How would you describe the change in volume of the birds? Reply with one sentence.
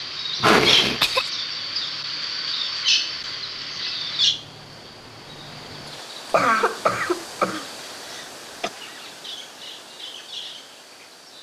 The volume of the birds goes down.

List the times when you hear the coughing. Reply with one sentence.
You can hear the coughing from 0.4 to 1.3 s and from 6.3 to 8.7 s.